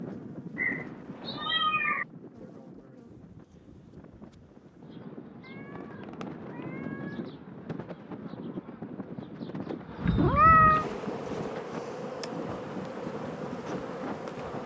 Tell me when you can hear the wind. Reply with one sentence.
The wind can be heard from 0.0 to 14.6 s.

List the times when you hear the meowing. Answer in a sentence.
The meowing can be heard from 0.6 to 2.0 s, from 6.2 to 6.8 s and from 10.0 to 10.8 s.